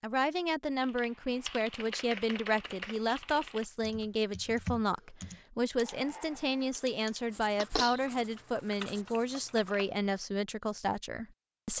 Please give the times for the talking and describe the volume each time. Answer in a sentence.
You can hear the talking from 0.0 to 11.7 s, at a steady volume.